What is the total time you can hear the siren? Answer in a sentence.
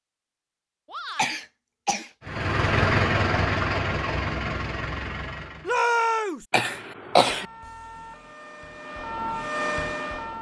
You can hear the siren for 3 seconds altogether.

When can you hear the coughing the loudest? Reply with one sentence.
The loudest moment of the coughing is at 7 seconds.